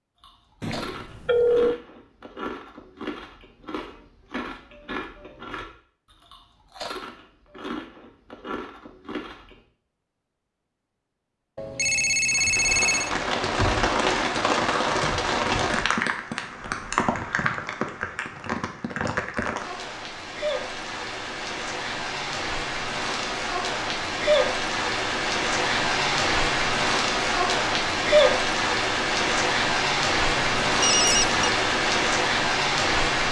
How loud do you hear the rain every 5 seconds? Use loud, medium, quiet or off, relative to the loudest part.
off, off, loud, medium, medium, loud, loud.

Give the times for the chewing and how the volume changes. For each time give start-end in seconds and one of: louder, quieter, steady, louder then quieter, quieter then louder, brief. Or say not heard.
0.2-9.6 steady.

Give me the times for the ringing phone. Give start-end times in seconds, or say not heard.
0.6-1.8, 11.6-13.1, 30.4-31.5.